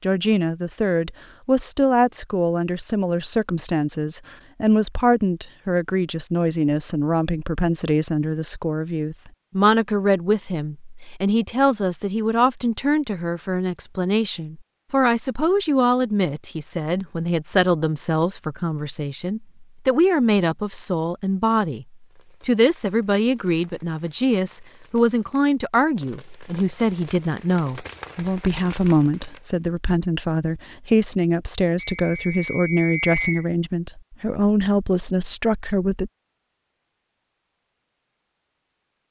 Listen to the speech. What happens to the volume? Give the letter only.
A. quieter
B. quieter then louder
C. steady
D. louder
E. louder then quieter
C.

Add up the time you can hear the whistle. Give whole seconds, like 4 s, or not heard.
2 s.